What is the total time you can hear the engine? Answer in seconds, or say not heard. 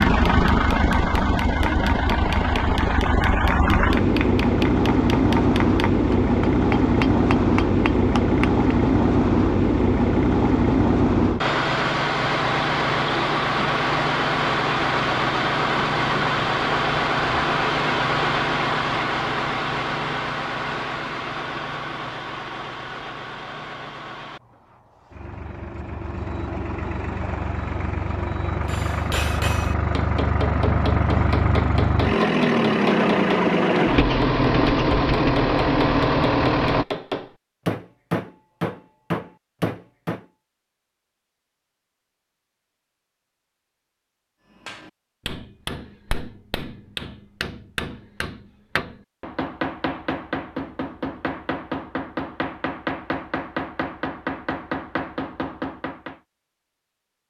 37 s.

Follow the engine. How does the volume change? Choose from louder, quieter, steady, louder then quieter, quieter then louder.
quieter then louder.